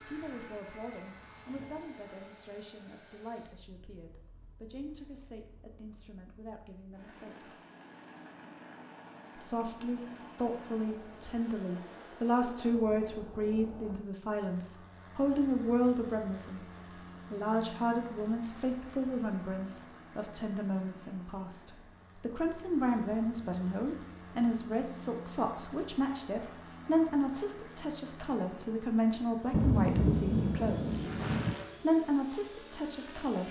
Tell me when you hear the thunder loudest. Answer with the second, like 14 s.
30 s.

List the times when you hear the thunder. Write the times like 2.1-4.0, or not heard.
29.5-31.6.